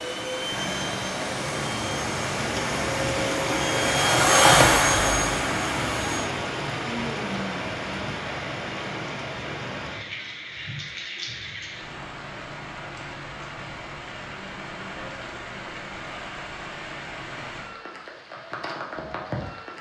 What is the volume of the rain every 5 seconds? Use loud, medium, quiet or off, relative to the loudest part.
loud, loud, medium, medium.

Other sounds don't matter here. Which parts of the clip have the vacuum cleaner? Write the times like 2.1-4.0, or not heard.
0.0-6.3.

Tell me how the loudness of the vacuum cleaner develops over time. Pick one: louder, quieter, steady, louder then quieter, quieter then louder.
louder then quieter.